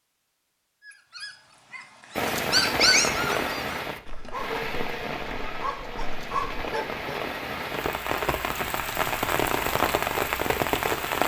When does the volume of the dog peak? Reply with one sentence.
The loudest moment of the dog is at 3 seconds.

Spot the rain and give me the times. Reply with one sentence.
The rain can be heard from 2.1 to 11.2 s.